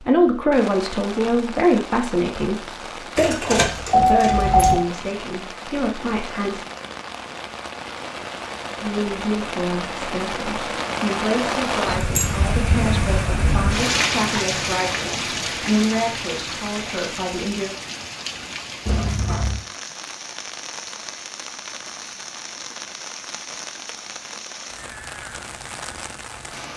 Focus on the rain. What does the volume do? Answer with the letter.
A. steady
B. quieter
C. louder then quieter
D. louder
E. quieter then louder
C.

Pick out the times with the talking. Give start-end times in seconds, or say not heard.
0.0-6.7, 8.8-17.8.